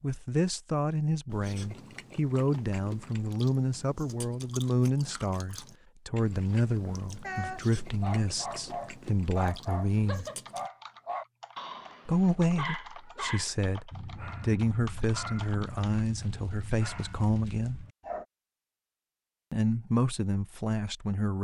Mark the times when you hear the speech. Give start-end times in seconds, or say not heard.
0.0-10.2, 12.1-17.9, 19.5-21.4.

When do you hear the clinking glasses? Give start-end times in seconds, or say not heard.
not heard.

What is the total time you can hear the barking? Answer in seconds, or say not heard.
11 s.